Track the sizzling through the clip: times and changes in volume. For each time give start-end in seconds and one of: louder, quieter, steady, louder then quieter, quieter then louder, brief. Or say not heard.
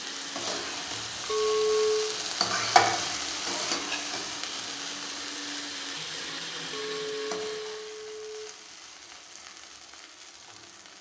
0.0-10.9 louder then quieter.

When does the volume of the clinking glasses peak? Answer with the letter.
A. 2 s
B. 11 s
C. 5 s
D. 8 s
A.